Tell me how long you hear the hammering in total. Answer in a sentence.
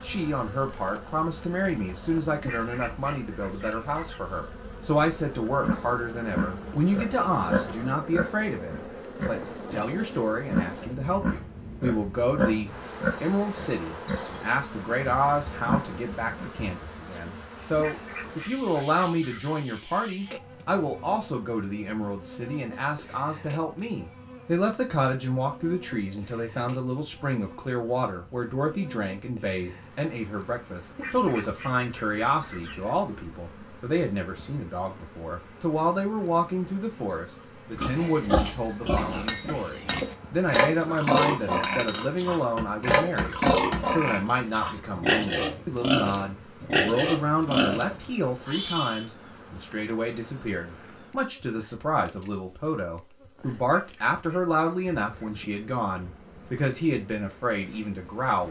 The hammering can be heard for 5 seconds in total.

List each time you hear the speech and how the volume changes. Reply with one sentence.
You can hear the speech from 0.0 to 58.4 s, at a steady volume.